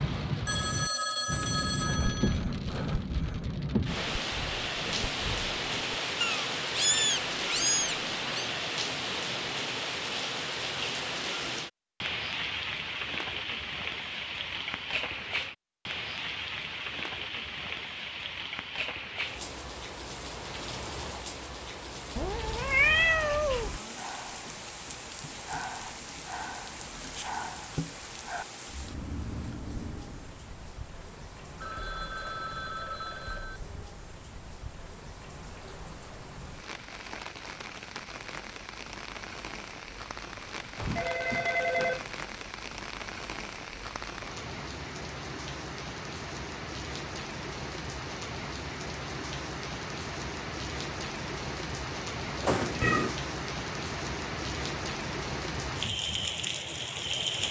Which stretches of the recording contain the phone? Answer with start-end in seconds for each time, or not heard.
0.5-2.4, 31.6-33.6, 40.8-42.1.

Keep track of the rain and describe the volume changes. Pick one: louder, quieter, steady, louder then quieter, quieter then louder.
quieter then louder.